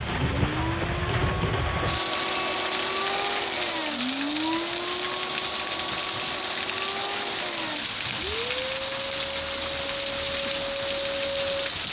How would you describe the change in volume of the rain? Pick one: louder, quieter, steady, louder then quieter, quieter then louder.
steady.